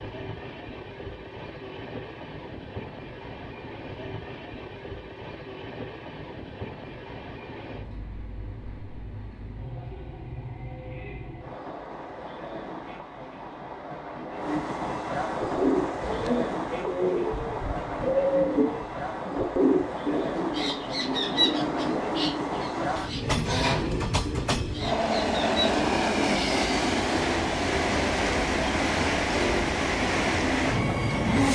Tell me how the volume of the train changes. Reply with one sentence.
The volume of the train goes up.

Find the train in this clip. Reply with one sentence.
You can hear the train from 0.0 to 31.5 s.